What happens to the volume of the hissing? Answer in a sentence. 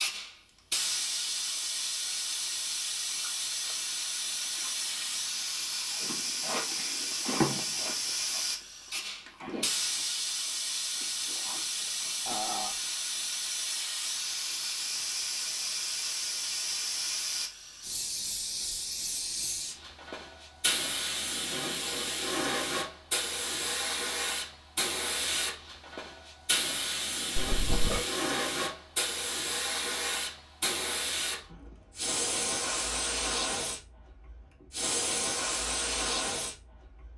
The loudness of the hissing stays about the same.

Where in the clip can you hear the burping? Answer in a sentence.
The burping can be heard from 12.2 to 12.7 s and from 27.4 to 28.1 s.